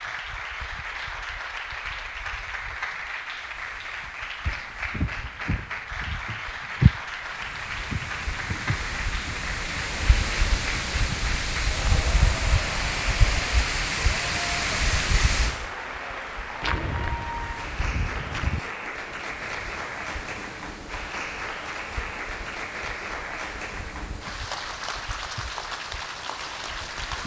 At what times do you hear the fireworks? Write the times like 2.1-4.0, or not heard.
not heard.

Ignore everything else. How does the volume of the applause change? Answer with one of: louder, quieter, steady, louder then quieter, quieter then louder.
steady.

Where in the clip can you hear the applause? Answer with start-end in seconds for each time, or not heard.
0.0-27.2.